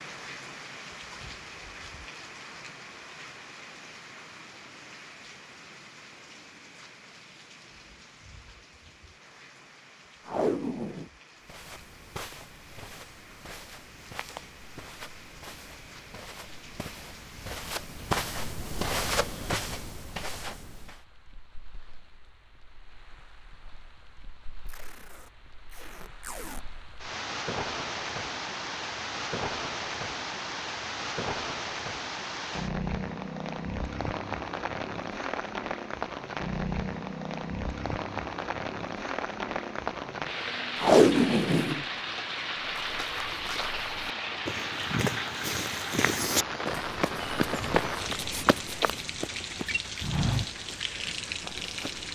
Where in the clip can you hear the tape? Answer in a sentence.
The tape can be heard from 10.2 to 11.1 s, from 24.6 to 26.6 s and from 40.8 to 41.9 s.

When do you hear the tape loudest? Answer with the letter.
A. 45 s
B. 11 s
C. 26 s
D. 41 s
D.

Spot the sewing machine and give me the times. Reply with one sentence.
You can't hear the sewing machine here.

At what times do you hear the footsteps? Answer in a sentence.
The footsteps can be heard from 11.4 to 21.1 s and from 42.7 to 52.1 s.